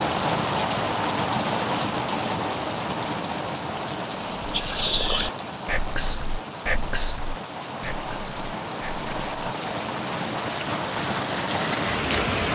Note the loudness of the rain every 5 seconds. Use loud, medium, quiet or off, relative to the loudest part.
loud, medium, loud.